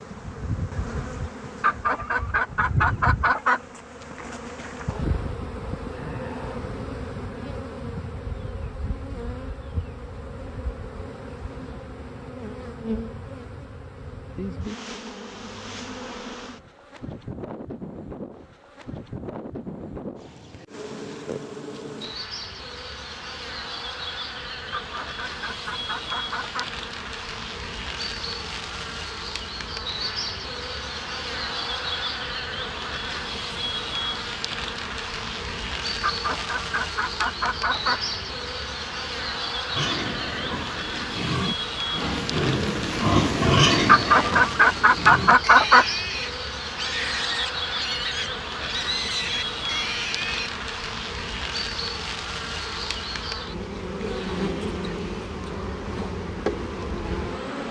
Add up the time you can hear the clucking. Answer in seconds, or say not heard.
8 s.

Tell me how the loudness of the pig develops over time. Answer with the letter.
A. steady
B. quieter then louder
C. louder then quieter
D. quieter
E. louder
C.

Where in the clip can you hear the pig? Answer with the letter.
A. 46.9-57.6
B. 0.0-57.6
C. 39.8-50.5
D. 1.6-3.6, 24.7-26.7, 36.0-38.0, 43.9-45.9
C.